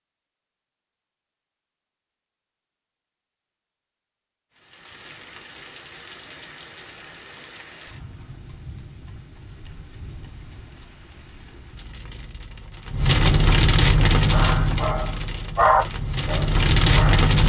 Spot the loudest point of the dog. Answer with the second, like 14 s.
16 s.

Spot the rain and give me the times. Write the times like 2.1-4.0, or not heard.
4.5-17.4.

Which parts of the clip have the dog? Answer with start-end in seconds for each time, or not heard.
14.2-17.3.